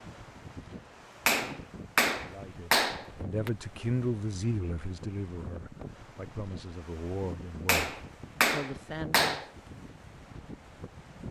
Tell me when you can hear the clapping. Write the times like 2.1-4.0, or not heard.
1.2-3.5, 7.7-9.4.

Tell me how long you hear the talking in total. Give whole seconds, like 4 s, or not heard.
7 s.